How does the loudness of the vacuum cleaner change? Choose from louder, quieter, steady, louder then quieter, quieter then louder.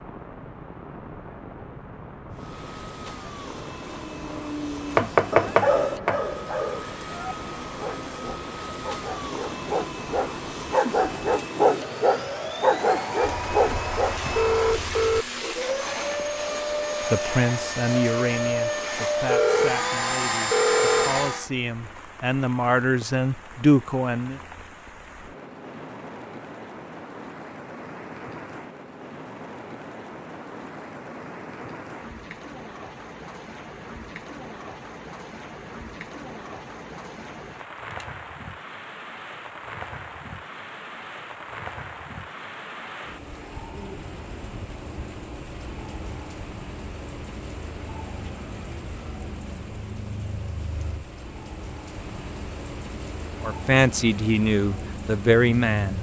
louder.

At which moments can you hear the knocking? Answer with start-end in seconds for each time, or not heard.
5.0-6.2.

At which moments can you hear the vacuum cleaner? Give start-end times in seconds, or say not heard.
2.3-21.5.